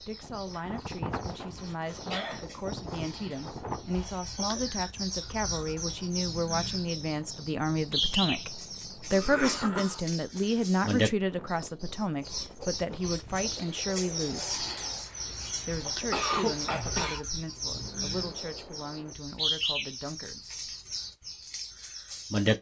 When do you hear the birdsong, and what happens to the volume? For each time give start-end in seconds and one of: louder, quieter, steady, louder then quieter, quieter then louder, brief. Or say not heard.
0.0-22.5 louder.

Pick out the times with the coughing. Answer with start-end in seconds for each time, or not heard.
0.5-2.5, 9.1-10.0, 15.2-17.2.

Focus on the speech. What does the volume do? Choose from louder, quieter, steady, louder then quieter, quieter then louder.
louder then quieter.